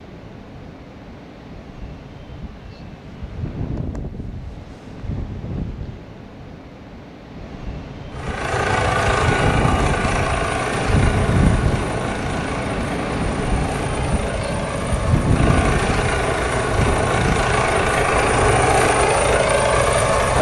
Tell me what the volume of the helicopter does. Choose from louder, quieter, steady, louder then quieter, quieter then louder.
quieter then louder.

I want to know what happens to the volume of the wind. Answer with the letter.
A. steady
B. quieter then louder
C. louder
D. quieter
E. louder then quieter
C.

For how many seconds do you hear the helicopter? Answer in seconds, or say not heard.
12 s.